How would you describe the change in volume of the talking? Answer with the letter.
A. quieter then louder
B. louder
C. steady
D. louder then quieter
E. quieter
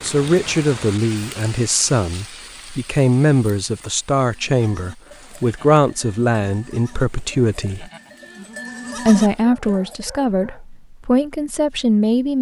C.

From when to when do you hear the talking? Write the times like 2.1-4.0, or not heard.
0.0-7.9, 9.1-12.3.